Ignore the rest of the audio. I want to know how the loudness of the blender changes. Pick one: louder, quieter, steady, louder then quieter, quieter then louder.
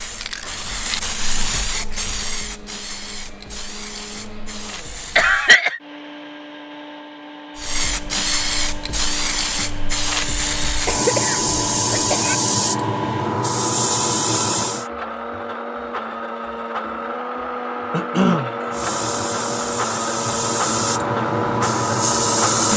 louder.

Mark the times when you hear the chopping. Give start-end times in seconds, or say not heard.
not heard.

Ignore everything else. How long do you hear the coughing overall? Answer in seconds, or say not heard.
3 s.